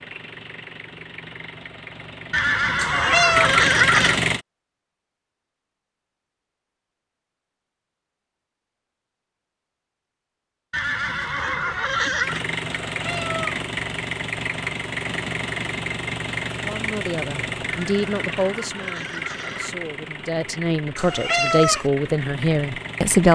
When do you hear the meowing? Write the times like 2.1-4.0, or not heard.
2.8-3.5, 12.8-13.6, 20.9-21.9.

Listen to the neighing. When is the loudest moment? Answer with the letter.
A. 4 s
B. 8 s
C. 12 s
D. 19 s
A.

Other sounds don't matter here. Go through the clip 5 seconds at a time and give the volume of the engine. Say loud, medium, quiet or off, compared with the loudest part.
loud, off, loud, loud, medium.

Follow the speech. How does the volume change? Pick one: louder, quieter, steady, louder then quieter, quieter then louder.
quieter then louder.